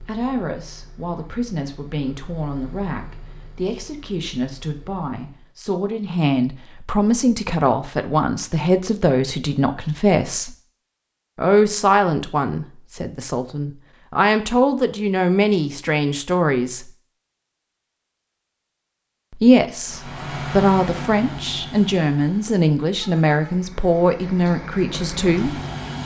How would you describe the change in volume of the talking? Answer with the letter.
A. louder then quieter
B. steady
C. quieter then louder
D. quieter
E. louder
E.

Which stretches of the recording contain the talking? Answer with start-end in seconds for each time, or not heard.
0.0-10.6, 11.3-16.9, 19.3-25.6.